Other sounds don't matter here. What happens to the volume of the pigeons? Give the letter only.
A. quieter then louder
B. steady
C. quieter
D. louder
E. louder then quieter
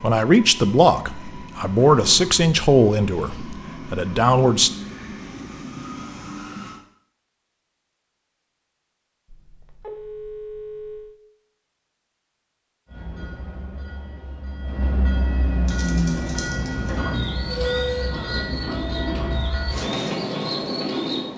D.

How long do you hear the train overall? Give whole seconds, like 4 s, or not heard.
15 s.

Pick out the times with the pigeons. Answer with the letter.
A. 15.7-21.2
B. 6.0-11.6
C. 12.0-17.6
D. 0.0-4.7
A.